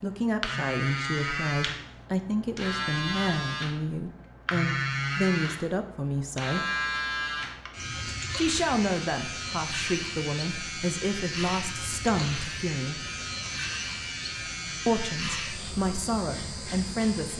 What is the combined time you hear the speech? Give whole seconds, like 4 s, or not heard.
14 s.